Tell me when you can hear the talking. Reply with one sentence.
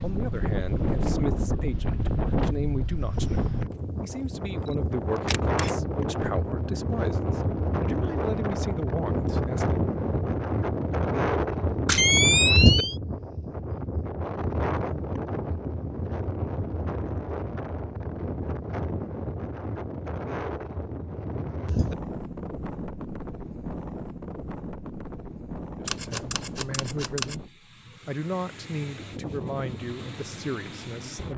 You can hear the talking from 0.0 to 9.8 s, from 25.8 to 27.4 s and from 28.1 to 31.3 s.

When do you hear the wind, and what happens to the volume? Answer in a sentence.
The wind can be heard from 0.0 to 31.3 s, getting quieter.